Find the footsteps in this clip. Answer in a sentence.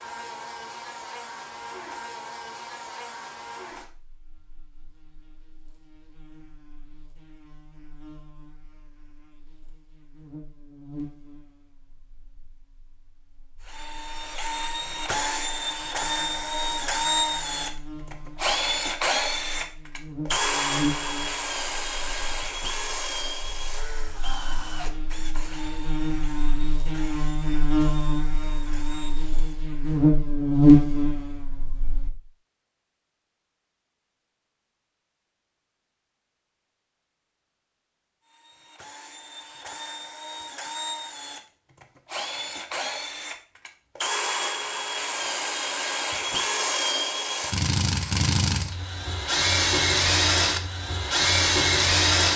The footsteps can't be heard in this clip.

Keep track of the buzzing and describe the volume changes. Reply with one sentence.
The volume of the buzzing goes down, then up.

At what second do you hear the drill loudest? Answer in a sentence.
The loudest moment of the drill is at 52 seconds.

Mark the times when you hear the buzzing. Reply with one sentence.
You can hear the buzzing from 0.0 to 32.1 s.